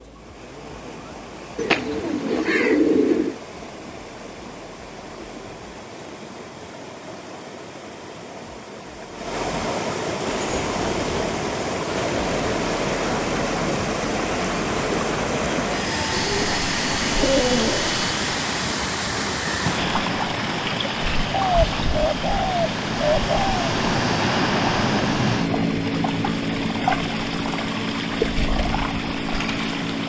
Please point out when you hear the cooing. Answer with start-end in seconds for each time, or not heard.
1.6-3.4, 16.1-18.0, 21.3-23.6.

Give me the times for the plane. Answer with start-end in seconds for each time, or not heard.
10.2-30.0.